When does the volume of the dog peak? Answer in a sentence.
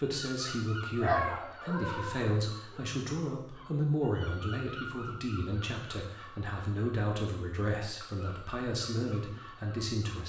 The volume of the dog peaks at 1 second.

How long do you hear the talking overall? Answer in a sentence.
You can hear the talking for 10 seconds altogether.